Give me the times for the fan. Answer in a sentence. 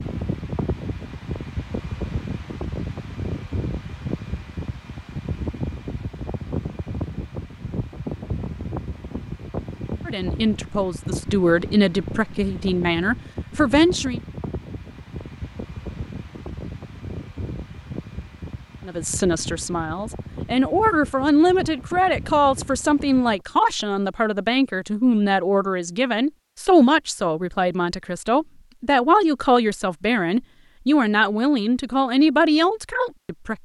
You can hear the fan from 0.0 to 23.4 s.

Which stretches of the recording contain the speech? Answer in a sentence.
You can hear the speech from 10.1 to 14.2 s and from 18.9 to 33.6 s.